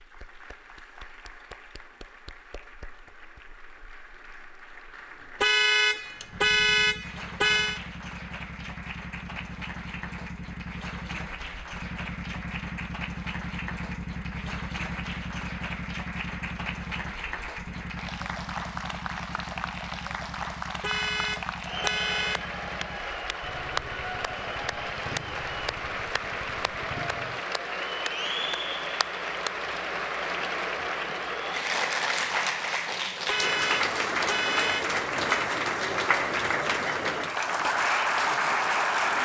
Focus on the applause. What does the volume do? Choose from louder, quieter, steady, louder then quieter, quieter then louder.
louder.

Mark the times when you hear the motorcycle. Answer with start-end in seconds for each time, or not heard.
6.2-27.4.